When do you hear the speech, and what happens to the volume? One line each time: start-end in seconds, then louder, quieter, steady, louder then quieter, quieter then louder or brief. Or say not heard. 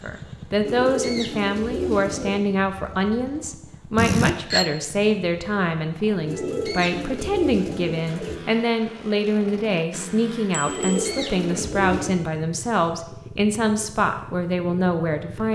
0.0-15.5 steady.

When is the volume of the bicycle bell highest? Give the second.
4 s.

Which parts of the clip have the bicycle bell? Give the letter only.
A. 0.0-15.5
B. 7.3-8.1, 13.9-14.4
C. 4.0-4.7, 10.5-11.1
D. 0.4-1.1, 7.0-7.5
C.